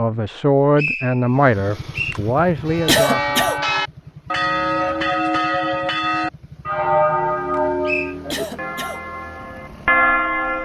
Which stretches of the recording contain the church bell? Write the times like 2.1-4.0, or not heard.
2.5-10.5.